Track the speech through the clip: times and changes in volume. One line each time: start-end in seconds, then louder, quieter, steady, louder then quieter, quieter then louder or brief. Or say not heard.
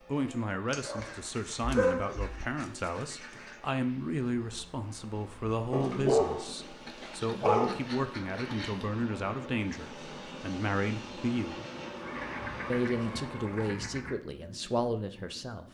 0.1-11.6 steady
12.7-15.6 brief.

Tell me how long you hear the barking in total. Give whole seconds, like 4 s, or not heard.
6 s.